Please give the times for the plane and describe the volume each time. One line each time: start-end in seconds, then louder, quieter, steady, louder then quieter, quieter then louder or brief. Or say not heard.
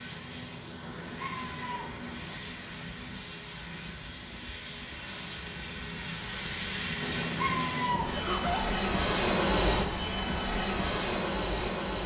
0.0-12.0 louder.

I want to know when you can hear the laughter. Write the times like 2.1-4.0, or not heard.
8.1-8.7.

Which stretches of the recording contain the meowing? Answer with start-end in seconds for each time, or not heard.
0.8-2.4, 7.0-8.2.